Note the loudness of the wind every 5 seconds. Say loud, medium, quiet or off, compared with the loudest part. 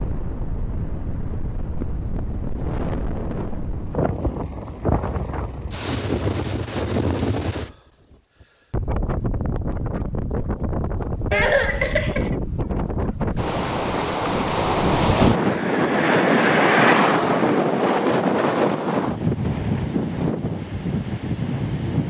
medium, medium, medium, loud, medium.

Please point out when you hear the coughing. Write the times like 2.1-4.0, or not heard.
11.3-12.3.